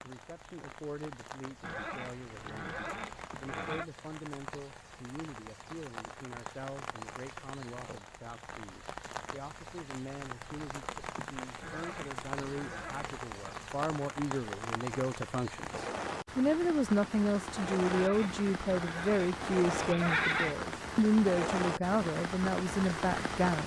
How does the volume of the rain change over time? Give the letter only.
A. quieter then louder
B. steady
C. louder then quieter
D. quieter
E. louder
E.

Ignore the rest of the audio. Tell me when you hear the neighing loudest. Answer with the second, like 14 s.
20 s.